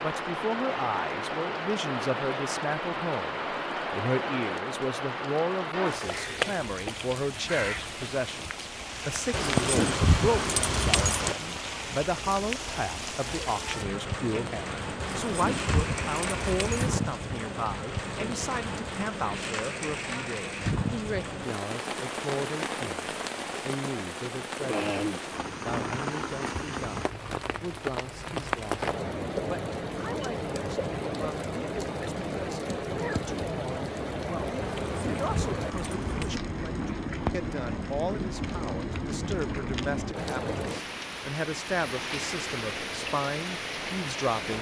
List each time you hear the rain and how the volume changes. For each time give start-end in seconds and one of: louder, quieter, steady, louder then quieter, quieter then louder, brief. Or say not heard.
0.0-44.5 steady.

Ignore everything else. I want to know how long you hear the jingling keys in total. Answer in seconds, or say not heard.
6 s.